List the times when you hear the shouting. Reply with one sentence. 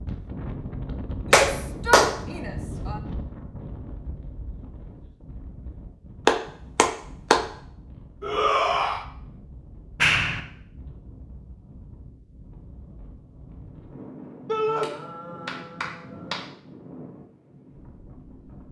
The shouting can be heard from 1.4 to 3.0 s, from 8.2 to 9.1 s and from 14.4 to 14.9 s.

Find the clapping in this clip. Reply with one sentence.
You can hear the clapping from 1.3 to 2.1 s, from 6.2 to 7.5 s, from 9.9 to 10.4 s and from 14.7 to 16.4 s.